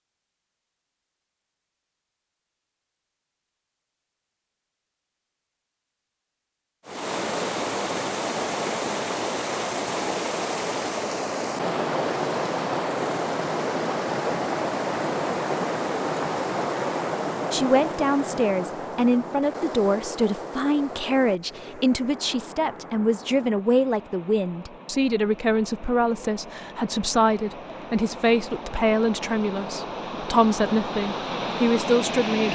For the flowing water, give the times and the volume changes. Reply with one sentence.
You can hear the flowing water from 6.8 to 32.5 s, getting quieter then louder.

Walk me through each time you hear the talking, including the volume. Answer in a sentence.
The talking can be heard from 17.5 to 32.5 s, at a steady volume.